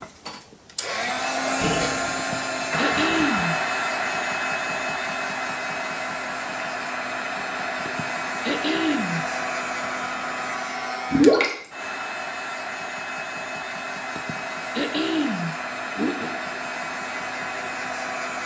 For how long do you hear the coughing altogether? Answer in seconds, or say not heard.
5 s.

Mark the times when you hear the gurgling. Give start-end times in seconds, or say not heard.
1.6-3.5, 11.1-11.7.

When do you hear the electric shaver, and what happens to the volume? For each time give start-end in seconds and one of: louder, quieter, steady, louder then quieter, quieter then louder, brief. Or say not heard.
not heard.